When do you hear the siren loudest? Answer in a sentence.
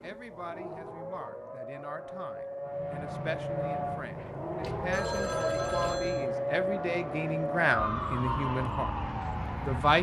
The volume of the siren peaks at 6 seconds.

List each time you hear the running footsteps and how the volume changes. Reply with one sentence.
You can't hear the running footsteps here.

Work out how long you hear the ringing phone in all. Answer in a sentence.
You can hear the ringing phone for 2 seconds altogether.